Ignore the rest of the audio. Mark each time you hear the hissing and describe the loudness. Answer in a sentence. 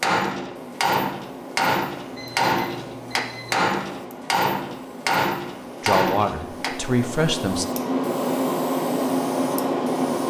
You can hear the hissing from 0.2 to 10.2 s, getting louder.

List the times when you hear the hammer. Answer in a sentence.
You can hear the hammer from 0.0 to 6.7 s.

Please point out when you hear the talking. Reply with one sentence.
You can hear the talking from 5.8 to 7.7 s.